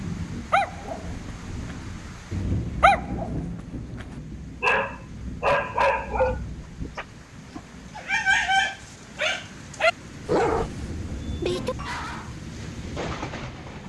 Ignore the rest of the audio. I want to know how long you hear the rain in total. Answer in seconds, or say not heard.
14 s.